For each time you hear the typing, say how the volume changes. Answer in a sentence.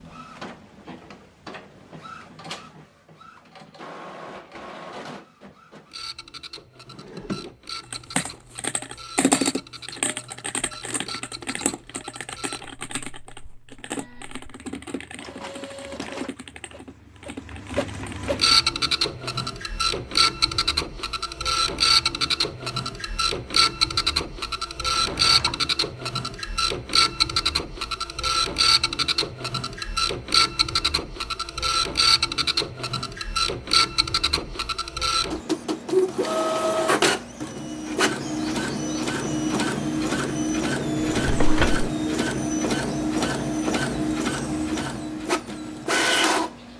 You can hear the typing from 7.9 to 18.6 s, getting quieter.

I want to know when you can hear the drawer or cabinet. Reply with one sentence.
The drawer or cabinet can be heard from 6.9 to 7.5 s, from 24.9 to 25.6 s and from 41.0 to 41.9 s.